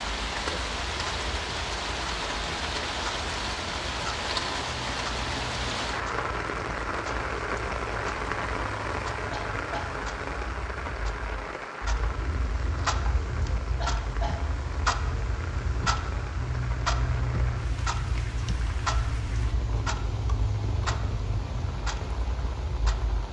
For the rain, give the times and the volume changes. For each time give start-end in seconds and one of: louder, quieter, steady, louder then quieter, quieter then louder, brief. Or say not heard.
0.0-23.2 quieter.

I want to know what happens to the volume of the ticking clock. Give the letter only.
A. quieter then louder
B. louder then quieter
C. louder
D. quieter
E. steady
C.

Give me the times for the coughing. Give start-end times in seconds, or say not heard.
9.3-9.9, 13.8-14.4.